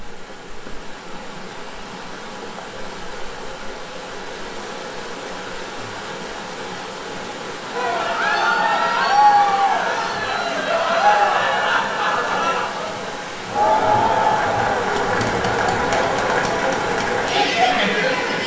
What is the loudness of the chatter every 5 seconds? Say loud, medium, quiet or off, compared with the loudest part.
off, loud, loud, loud.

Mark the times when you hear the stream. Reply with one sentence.
You can hear the stream from 0.0 to 18.4 s.